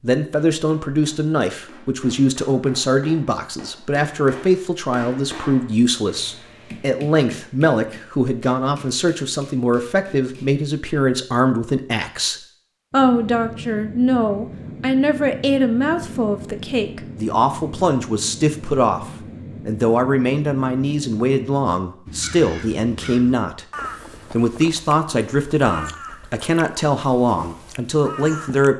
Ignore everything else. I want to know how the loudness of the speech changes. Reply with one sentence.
The loudness of the speech stays about the same.